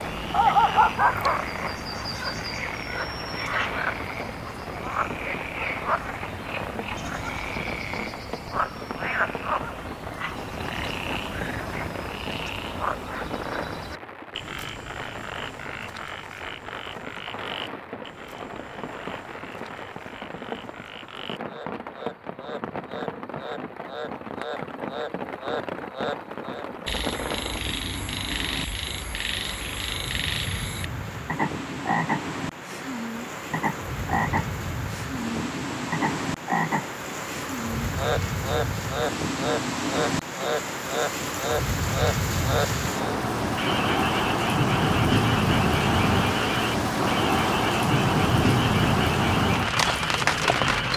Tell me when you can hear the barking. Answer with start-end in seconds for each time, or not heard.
0.3-1.4.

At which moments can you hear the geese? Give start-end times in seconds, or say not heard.
not heard.